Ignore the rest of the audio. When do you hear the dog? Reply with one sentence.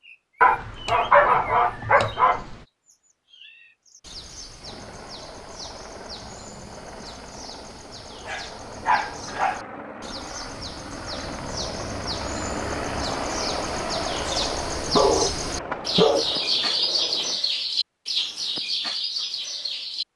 The dog can be heard from 0.4 to 2.5 s, from 8.2 to 9.7 s and from 14.9 to 16.3 s.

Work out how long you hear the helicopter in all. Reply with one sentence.
You can hear the helicopter for 13 seconds altogether.